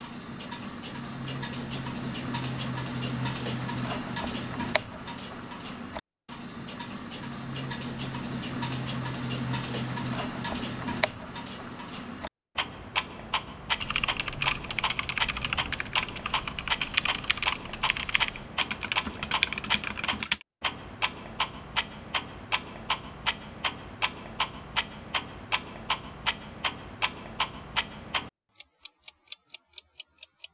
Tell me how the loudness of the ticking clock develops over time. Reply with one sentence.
The loudness of the ticking clock stays about the same.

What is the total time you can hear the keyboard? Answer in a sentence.
The keyboard can be heard for 7 seconds in total.